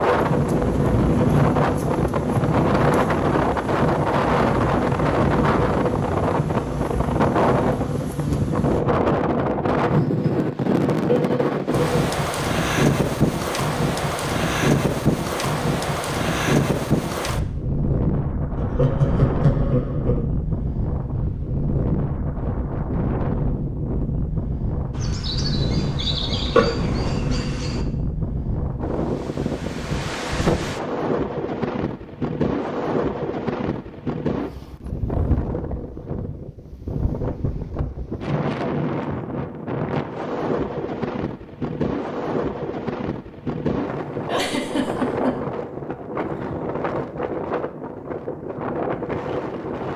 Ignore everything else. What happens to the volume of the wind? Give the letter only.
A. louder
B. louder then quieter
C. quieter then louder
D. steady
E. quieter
E.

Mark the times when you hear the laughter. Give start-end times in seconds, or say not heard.
11.1-12.1, 18.6-20.2, 44.2-45.4.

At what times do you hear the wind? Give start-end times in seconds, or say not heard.
0.0-49.9.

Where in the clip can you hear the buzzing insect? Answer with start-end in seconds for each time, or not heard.
0.0-8.8, 24.9-27.9.